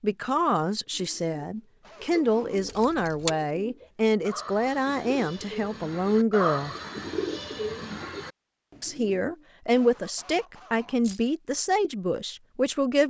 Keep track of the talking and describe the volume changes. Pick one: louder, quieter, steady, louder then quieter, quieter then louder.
steady.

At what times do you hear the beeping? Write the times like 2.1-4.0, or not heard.
not heard.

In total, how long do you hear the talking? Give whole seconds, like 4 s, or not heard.
11 s.